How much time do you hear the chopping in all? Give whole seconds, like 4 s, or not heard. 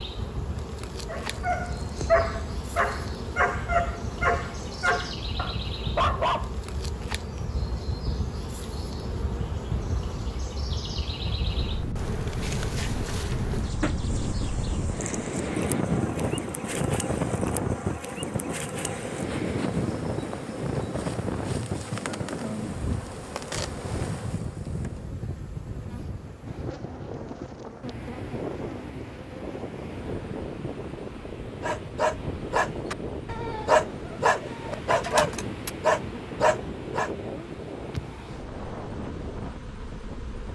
not heard.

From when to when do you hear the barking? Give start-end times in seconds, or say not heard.
1.1-6.5, 31.6-37.1.